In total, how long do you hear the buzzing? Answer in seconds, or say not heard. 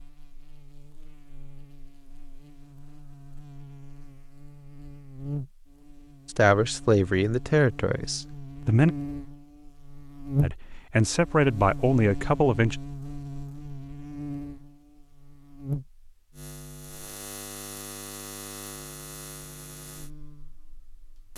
21 s.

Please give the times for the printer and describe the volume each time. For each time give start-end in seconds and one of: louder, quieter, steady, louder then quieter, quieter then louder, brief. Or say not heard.
not heard.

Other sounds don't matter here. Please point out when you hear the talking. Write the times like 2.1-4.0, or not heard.
6.2-8.9, 10.4-12.8.